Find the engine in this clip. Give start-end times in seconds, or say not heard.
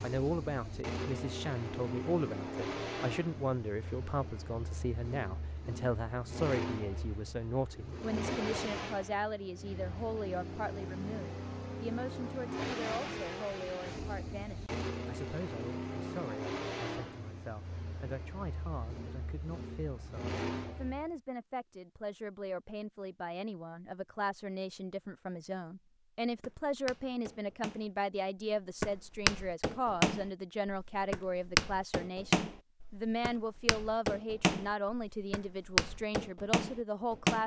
0.0-21.1.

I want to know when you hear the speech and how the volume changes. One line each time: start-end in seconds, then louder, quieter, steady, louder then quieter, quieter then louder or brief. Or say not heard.
0.0-37.4 quieter then louder.